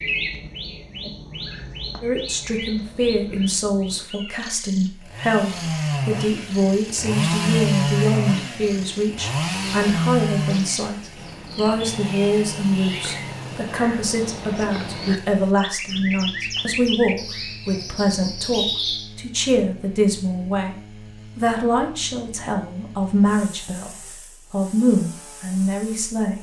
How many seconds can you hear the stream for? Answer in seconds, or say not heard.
not heard.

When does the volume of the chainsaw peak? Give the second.
8 s.